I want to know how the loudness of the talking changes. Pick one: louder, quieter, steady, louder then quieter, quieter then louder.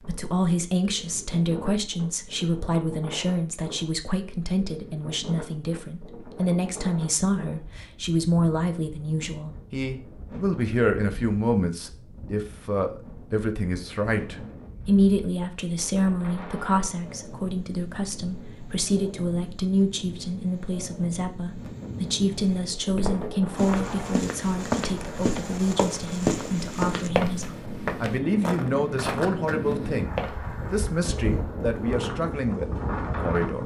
steady.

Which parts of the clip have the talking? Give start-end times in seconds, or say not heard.
0.1-33.6.